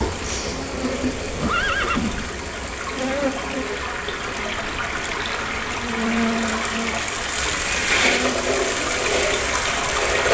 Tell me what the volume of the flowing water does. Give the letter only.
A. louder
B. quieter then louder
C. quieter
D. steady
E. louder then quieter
A.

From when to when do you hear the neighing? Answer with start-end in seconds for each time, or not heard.
1.0-2.4, 7.5-8.3.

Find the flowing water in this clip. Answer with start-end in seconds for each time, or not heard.
0.0-10.3.